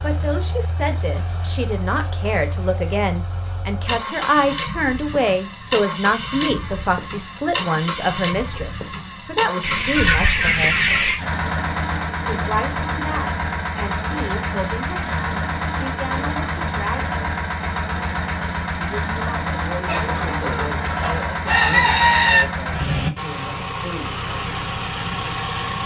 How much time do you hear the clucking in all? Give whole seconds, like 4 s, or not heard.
4 s.